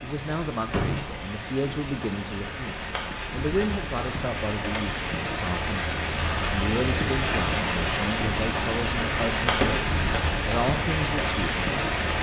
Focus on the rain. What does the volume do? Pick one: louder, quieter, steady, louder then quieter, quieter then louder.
louder.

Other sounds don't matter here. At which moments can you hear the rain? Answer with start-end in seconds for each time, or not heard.
0.0-12.1.